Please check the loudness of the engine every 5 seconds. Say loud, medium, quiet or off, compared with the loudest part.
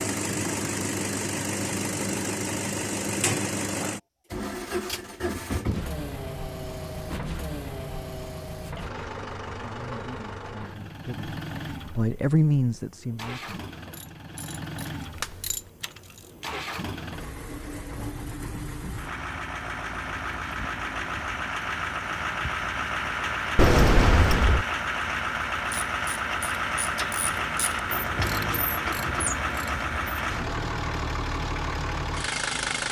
loud, medium, medium, medium, loud, loud, loud.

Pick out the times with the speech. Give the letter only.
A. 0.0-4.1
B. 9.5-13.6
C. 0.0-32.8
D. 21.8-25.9
B.